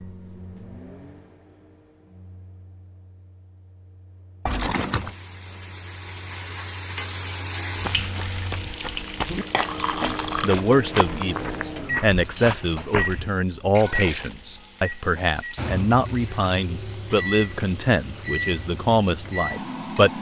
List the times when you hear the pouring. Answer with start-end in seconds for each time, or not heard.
4.5-5.2, 8.7-10.6, 13.8-14.3.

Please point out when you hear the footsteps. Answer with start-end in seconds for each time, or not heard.
7.7-13.3.